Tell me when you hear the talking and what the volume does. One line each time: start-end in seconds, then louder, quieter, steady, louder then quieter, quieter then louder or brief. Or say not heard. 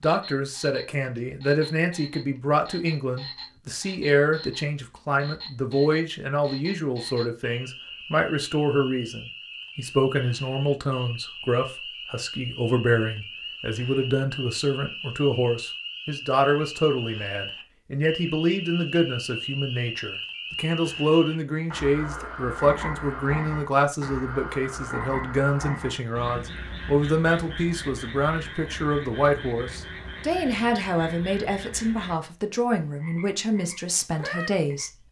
0.0-35.0 steady.